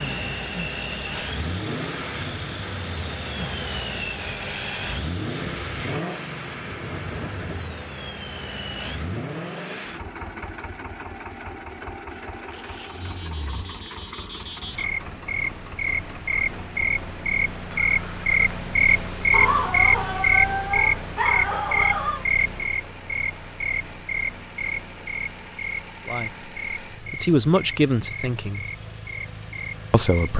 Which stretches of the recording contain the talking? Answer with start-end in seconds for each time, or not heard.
26.1-28.6, 29.9-30.3.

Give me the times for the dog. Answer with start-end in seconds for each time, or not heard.
19.3-22.2.